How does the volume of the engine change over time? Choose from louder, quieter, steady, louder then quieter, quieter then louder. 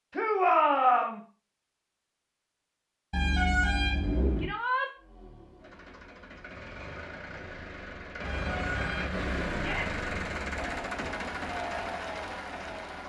louder then quieter.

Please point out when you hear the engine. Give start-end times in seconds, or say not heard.
5.0-13.0.